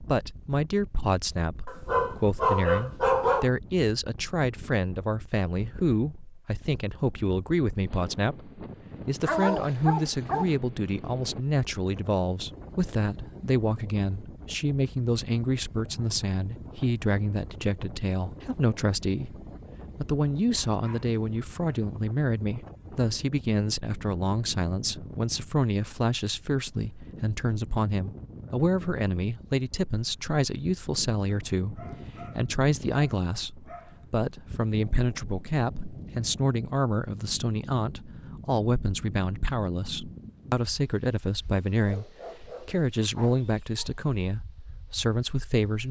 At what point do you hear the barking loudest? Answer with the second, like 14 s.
3 s.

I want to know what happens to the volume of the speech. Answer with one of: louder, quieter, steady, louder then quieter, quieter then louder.
steady.